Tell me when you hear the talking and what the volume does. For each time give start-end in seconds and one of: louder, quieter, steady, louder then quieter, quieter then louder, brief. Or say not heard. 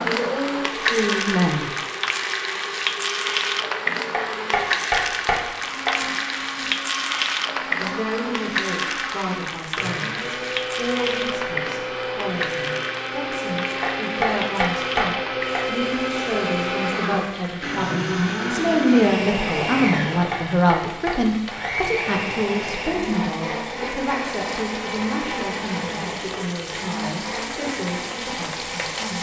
0.0-1.7 brief
7.8-29.1 louder then quieter.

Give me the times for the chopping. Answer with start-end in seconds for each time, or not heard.
4.1-6.0, 13.8-15.7, 19.9-21.8.